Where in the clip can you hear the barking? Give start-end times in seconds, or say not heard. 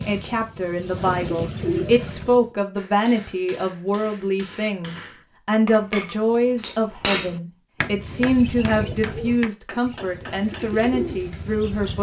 not heard.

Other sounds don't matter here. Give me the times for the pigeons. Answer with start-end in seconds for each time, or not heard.
0.0-2.5, 8.0-11.9.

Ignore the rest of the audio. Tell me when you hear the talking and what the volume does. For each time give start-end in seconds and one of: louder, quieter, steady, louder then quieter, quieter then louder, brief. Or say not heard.
0.0-11.9 steady.